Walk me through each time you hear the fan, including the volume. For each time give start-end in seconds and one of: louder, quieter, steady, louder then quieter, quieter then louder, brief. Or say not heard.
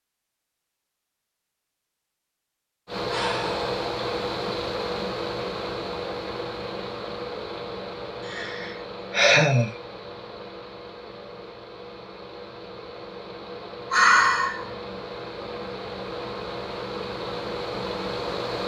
2.9-18.6 quieter then louder.